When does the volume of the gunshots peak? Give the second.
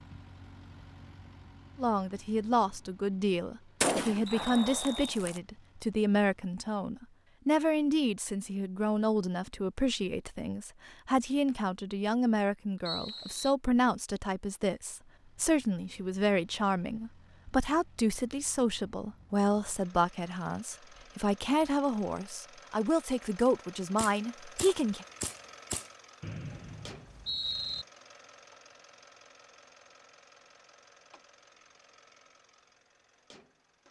4 s.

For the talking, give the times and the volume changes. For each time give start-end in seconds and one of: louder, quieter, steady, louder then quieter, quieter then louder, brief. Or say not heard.
1.8-25.1 steady.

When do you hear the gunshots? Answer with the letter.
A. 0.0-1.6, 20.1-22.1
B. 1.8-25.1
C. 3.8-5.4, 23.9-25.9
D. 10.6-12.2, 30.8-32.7
C.